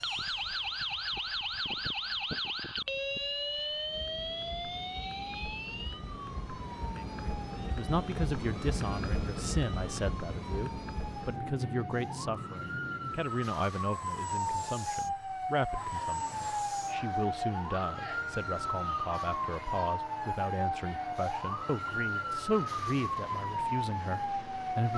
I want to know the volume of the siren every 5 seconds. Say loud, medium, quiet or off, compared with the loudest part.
loud, medium, loud, loud, loud.